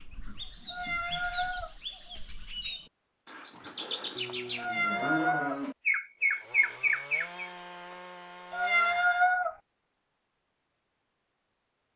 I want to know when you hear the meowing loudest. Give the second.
9 s.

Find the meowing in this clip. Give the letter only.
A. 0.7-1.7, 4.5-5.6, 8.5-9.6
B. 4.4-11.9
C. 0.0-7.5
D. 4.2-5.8
A.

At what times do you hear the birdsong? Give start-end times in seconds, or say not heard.
0.0-7.5.